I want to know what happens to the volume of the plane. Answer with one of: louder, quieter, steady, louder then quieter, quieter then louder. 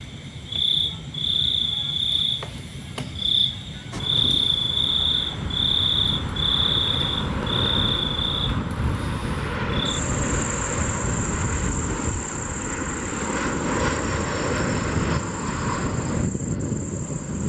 louder.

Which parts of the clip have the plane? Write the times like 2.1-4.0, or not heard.
3.9-17.4.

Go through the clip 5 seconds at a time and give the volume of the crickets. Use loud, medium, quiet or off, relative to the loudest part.
loud, loud, medium, quiet.